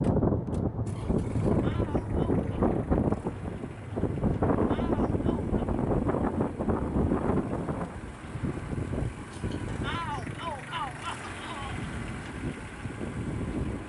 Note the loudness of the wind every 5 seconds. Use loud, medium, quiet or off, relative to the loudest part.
loud, loud, medium.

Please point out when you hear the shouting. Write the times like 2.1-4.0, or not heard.
1.6-2.5, 4.7-5.5, 9.8-11.8.